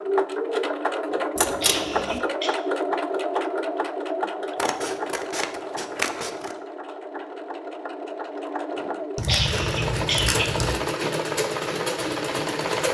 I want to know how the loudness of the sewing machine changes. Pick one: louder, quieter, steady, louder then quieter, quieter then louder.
quieter then louder.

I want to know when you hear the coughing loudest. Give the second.
9 s.